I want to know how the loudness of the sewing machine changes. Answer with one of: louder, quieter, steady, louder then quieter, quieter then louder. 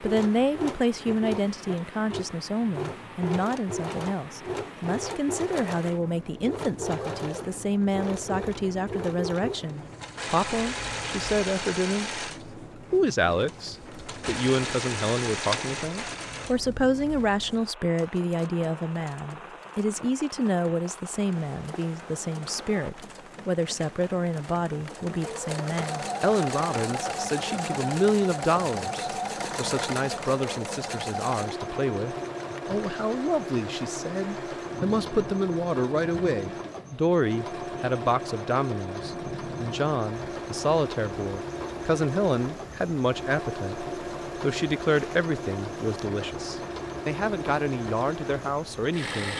steady.